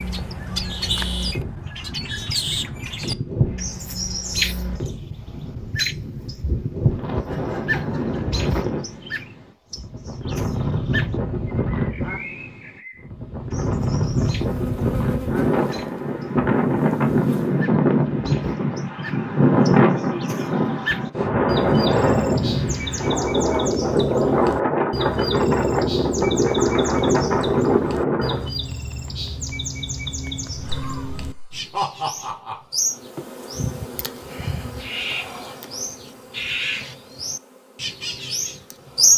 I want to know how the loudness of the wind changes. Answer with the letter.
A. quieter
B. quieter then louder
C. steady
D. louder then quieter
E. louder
E.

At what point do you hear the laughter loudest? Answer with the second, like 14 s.
32 s.